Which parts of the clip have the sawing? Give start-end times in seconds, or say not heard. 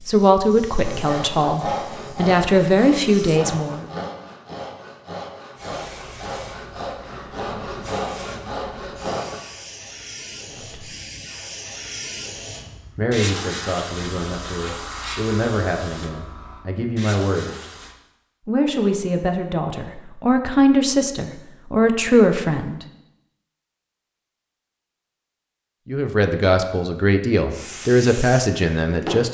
0.8-9.4.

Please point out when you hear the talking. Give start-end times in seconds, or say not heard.
0.1-3.9, 10.5-10.9, 12.9-17.6, 18.4-22.8, 25.9-29.2.